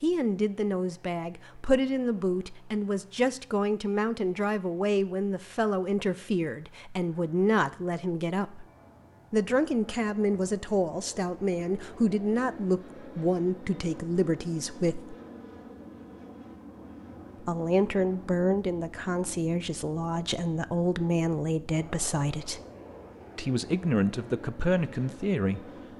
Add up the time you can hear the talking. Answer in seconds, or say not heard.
22 s.